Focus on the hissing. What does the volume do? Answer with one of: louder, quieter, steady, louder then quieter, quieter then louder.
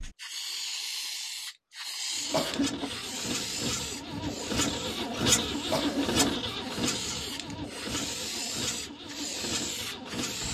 quieter then louder.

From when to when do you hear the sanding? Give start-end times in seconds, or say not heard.
not heard.